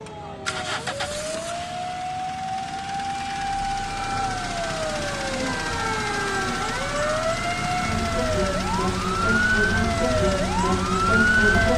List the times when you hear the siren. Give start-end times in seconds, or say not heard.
0.0-11.7.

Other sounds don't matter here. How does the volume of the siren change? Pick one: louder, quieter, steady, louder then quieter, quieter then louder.
louder.